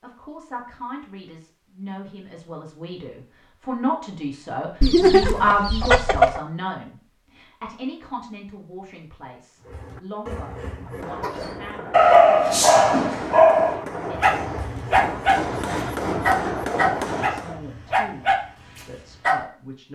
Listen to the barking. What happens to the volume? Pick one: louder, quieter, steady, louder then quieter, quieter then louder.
quieter.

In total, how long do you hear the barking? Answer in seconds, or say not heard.
8 s.